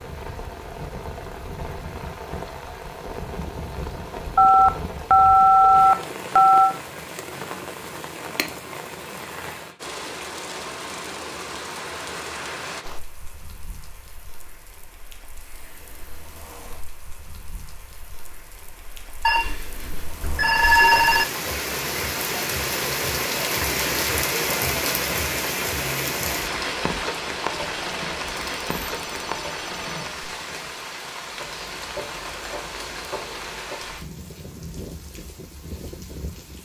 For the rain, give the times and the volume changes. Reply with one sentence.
The rain can be heard from 0.0 to 36.6 s, getting louder then quieter.